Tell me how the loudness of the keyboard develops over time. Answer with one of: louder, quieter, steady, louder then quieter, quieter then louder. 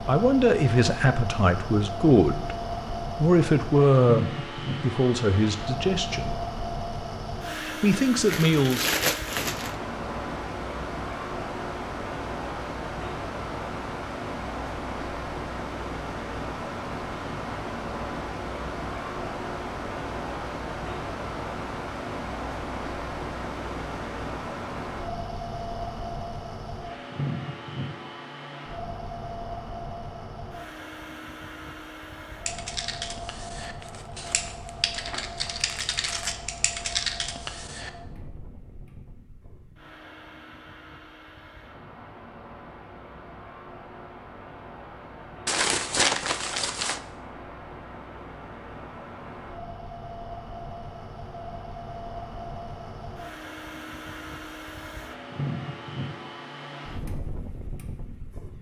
louder.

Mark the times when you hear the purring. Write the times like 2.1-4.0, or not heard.
not heard.